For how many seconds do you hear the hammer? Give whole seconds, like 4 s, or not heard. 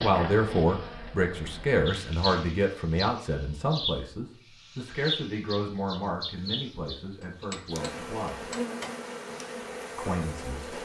2 s.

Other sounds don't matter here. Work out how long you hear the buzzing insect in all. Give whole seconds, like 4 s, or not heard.
11 s.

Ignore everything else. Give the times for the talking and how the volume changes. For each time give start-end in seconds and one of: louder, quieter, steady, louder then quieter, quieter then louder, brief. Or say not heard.
0.0-8.4 quieter
9.9-10.7 brief.